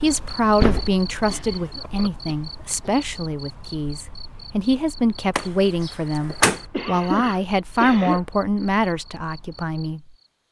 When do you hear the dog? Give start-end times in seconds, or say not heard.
not heard.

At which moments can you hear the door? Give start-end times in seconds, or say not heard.
0.1-2.1, 5.3-6.6.